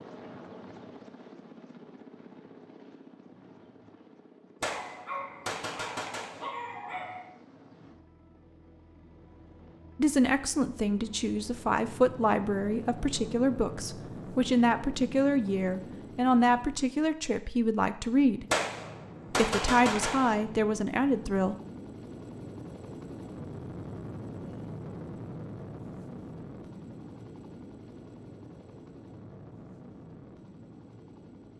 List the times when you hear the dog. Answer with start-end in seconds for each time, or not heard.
4.6-7.3.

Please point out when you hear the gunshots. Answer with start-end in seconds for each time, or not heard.
4.6-6.5, 18.5-20.4.